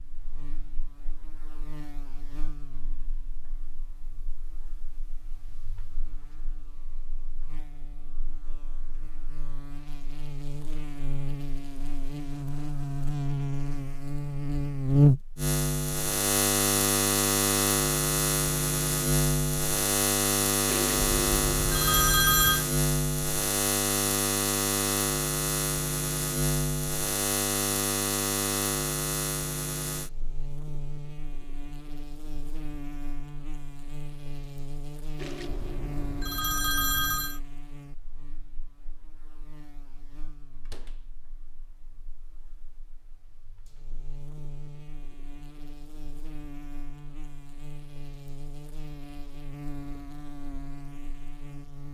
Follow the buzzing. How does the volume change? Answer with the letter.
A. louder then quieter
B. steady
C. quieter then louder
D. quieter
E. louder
A.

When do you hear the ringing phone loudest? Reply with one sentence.
The volume of the ringing phone peaks at 22 seconds.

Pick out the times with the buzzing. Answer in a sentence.
You can hear the buzzing from 0.0 to 51.9 s.